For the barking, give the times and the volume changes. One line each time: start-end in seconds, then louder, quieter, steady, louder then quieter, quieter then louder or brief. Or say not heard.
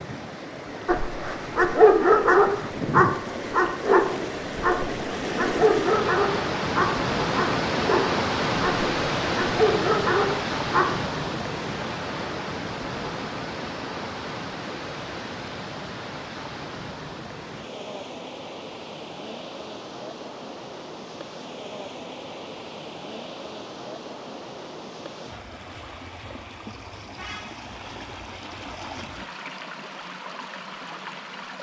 0.8-10.9 quieter.